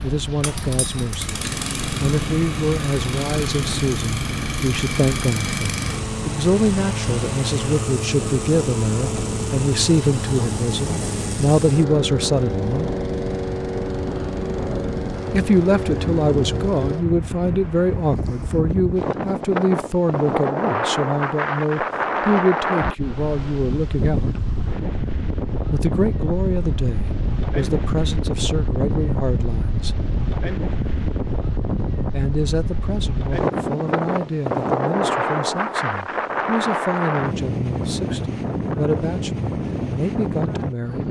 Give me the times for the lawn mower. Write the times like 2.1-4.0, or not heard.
0.0-17.1.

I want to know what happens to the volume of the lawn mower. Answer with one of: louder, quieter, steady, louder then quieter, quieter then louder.
steady.